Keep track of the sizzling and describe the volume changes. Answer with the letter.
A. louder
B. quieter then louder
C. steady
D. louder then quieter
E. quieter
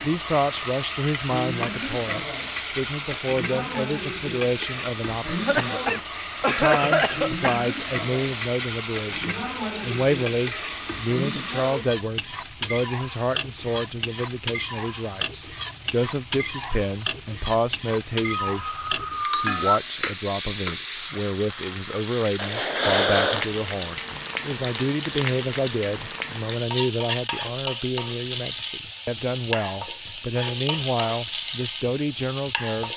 C.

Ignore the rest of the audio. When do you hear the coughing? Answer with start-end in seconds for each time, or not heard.
5.2-7.7, 18.4-19.8, 22.4-23.6.